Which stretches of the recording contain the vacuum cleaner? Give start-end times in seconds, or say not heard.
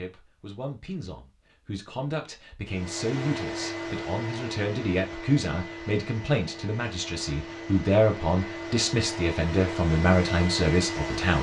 2.6-11.3.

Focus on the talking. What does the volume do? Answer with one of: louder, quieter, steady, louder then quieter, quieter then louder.
louder.